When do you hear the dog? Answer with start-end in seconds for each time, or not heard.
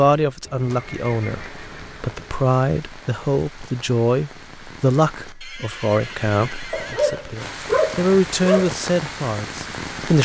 6.7-8.7.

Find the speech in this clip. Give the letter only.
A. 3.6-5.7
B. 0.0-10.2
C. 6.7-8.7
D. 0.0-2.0
B.